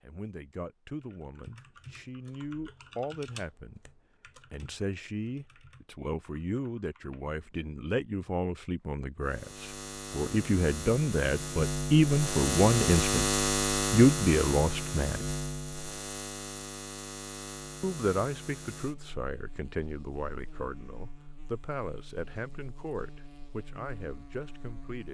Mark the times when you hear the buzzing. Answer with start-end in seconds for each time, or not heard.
9.2-25.0.